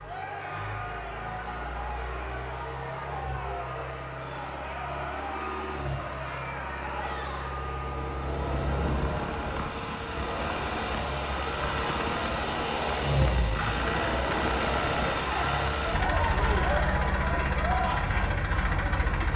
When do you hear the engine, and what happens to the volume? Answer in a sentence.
You can hear the engine from 0.0 to 19.3 s, getting louder.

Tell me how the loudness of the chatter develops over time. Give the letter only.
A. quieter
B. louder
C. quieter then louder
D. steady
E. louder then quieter
B.